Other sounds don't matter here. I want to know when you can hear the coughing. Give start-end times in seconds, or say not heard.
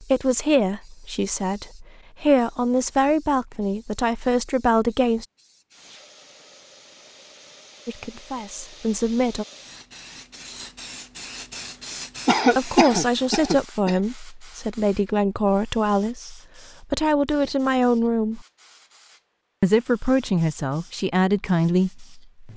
12.2-13.9.